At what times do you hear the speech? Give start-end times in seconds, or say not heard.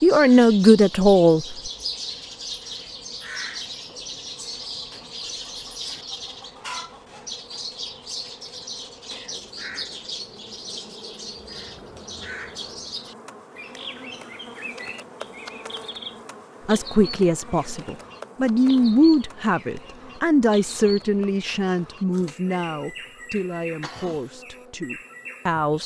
0.0-1.6, 16.6-25.8.